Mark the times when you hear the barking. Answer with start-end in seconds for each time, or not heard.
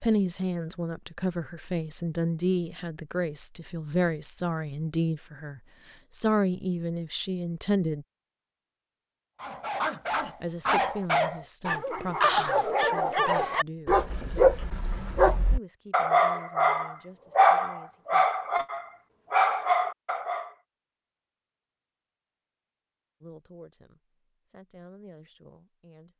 9.4-20.5.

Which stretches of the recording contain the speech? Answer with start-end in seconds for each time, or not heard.
0.0-8.1, 10.2-14.0, 15.5-18.2, 23.2-26.1.